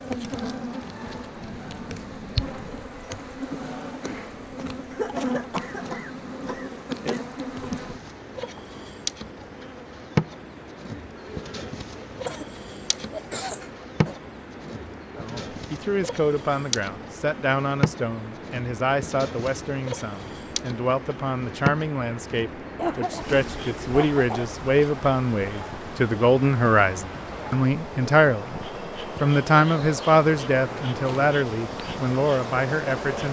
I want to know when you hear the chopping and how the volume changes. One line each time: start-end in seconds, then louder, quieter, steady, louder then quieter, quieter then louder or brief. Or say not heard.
not heard.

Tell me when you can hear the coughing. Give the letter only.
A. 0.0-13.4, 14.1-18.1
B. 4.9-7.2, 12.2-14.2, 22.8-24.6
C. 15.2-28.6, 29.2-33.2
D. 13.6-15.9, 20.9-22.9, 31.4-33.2
B.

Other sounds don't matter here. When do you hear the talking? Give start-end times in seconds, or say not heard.
15.2-28.6, 29.2-33.2.